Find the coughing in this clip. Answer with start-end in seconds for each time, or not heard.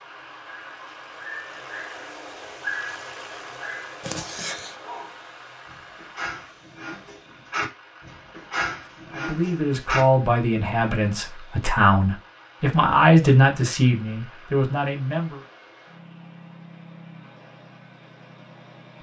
4.0-4.8.